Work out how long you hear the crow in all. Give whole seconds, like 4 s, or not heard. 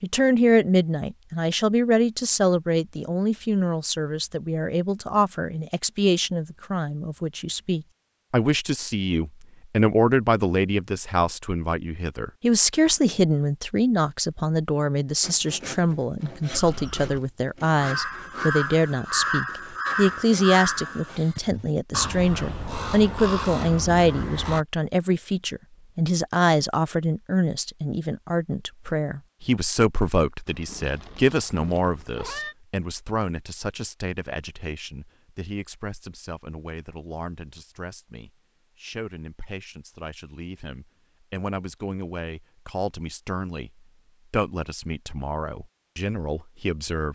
8 s.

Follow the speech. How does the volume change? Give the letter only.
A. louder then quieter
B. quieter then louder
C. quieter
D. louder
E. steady
C.